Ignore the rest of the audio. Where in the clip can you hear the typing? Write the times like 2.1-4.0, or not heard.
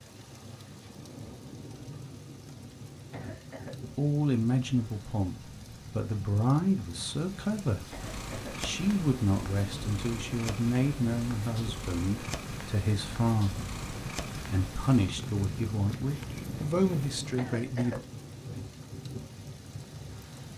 not heard.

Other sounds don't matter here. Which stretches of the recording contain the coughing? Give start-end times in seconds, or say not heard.
3.1-3.8, 7.9-8.6, 17.4-18.1.